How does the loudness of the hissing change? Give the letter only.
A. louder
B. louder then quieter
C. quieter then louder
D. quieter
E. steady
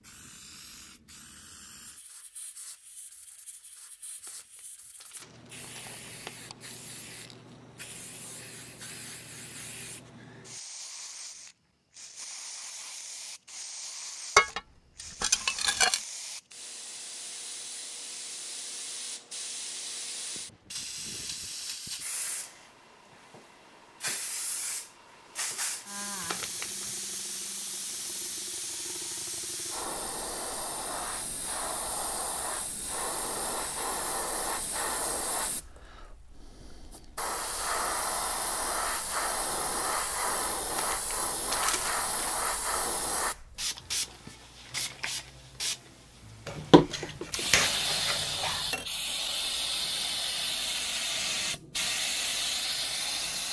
A.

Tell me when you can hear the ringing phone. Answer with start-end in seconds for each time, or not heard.
not heard.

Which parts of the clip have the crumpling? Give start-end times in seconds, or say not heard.
4.2-6.3, 26.1-26.9, 40.7-42.4.